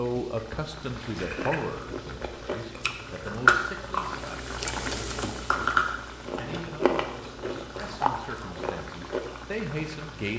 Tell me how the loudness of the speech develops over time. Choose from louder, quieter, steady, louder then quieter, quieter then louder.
quieter then louder.